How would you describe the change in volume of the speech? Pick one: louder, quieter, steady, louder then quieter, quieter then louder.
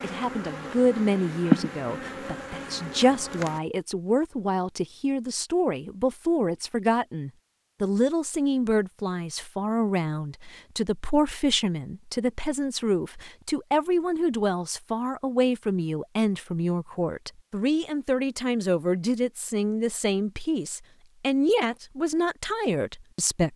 steady.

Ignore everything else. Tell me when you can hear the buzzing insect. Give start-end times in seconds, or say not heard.
0.0-3.6.